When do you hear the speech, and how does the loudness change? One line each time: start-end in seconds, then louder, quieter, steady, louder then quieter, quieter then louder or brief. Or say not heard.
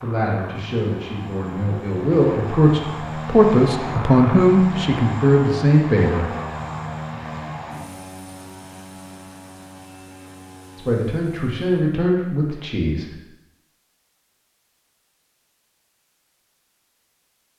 0.0-6.3 louder
10.8-13.2 brief.